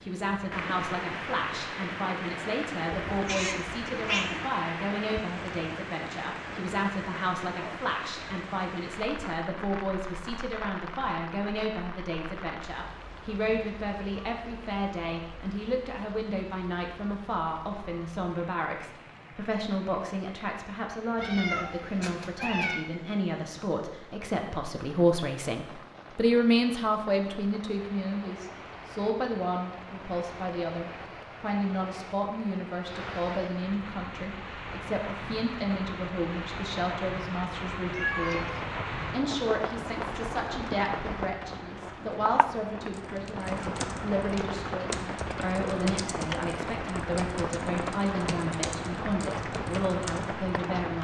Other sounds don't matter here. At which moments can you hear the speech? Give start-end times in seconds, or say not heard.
0.0-50.9.